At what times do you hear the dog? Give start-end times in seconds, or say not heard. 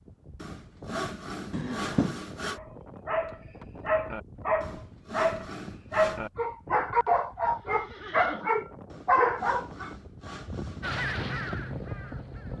2.5-9.9.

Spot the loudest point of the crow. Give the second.
11 s.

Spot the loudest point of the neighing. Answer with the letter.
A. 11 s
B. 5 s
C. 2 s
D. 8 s
C.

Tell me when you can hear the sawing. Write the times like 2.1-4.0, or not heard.
0.4-2.6, 4.6-6.3, 8.9-11.0.